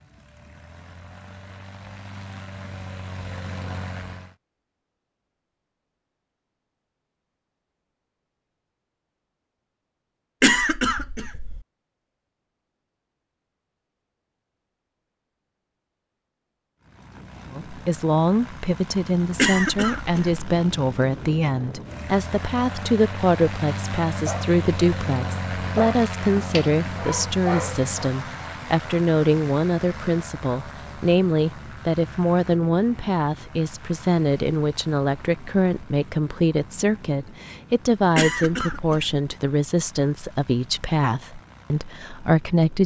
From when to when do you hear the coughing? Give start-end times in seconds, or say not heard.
10.4-11.6, 19.4-20.4, 38.1-39.2.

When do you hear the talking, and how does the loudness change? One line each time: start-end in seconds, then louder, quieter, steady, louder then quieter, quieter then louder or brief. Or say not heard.
17.5-42.8 steady.